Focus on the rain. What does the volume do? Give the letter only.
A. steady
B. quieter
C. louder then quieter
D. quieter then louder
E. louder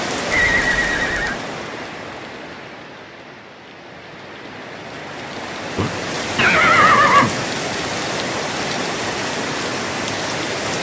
D.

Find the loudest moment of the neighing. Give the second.
7 s.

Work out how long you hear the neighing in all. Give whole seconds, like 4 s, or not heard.
3 s.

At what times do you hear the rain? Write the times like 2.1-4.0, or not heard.
0.0-10.7.